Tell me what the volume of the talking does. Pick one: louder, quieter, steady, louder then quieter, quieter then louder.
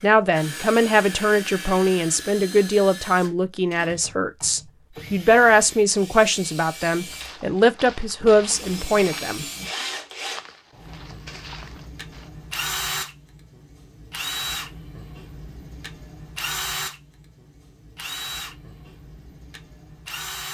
steady.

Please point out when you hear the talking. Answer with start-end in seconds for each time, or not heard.
0.0-9.4.